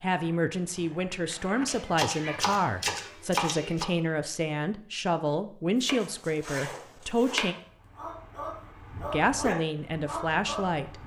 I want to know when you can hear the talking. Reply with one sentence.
You can hear the talking from 0.0 to 7.5 s and from 9.1 to 11.0 s.